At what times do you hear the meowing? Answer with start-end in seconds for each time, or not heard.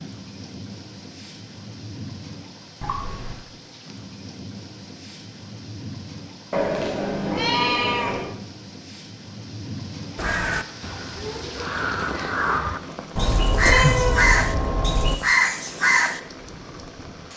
2.8-3.5, 6.5-8.3, 13.2-15.2.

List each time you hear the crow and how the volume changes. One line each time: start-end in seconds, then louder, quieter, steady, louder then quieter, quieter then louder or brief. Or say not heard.
10.2-16.2 louder.